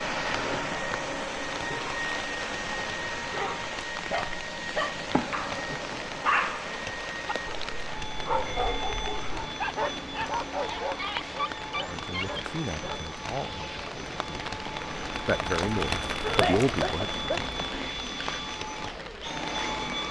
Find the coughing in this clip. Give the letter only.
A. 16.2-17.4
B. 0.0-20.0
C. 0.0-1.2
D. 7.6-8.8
A.